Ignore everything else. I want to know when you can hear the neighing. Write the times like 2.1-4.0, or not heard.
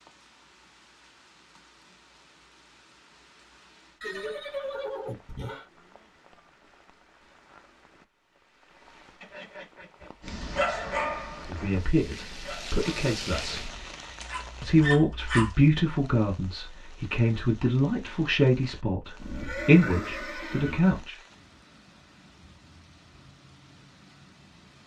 4.0-5.7, 9.2-11.2, 19.2-21.1.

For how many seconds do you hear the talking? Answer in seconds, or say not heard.
9 s.